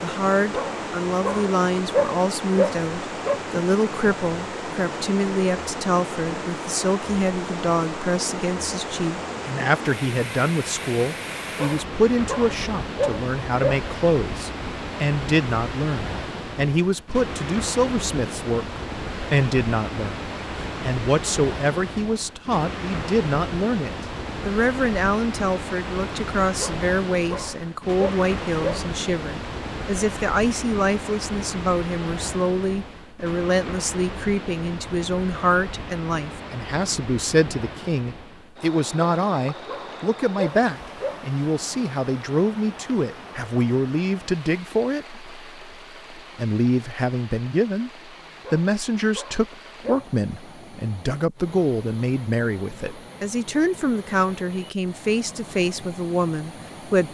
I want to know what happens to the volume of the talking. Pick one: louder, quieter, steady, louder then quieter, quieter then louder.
steady.